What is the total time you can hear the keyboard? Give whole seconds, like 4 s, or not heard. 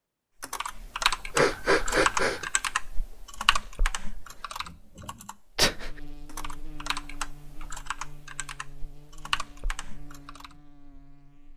10 s.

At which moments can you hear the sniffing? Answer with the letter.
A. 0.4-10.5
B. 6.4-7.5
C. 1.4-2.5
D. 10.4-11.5
C.